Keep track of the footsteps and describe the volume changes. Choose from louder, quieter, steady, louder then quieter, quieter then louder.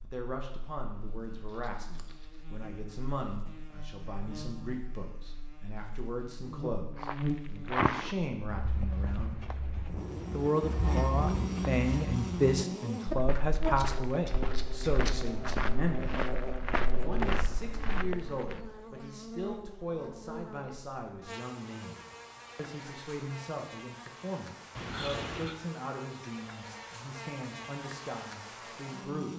quieter then louder.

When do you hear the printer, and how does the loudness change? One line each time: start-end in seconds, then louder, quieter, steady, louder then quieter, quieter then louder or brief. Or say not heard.
not heard.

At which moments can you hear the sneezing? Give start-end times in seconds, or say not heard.
not heard.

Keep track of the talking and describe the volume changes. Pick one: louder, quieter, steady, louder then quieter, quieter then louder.
louder then quieter.